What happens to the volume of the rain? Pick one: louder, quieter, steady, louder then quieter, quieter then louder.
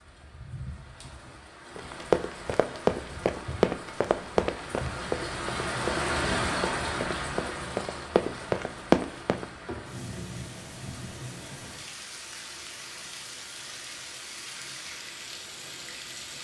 louder then quieter.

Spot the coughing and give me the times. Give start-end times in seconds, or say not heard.
not heard.